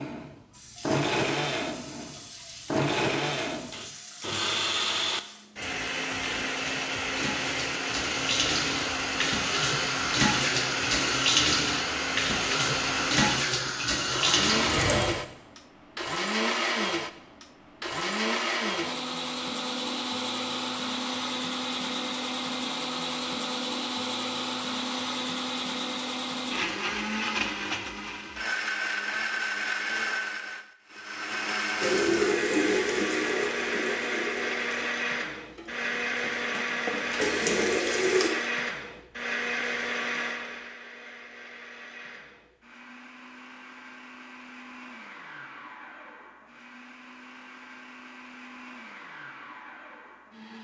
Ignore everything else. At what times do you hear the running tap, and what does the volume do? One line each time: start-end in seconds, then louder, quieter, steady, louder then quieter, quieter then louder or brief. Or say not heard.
0.3-15.2 louder
31.8-38.3 quieter then louder.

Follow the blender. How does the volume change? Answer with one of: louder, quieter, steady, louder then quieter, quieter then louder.
quieter.